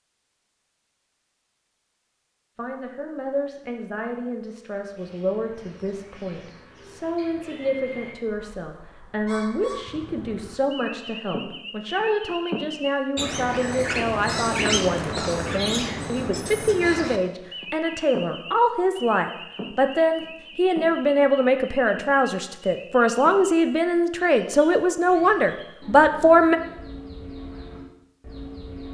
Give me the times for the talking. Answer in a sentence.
The talking can be heard from 2.5 to 26.6 s.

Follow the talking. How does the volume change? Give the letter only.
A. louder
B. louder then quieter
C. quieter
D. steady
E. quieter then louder
A.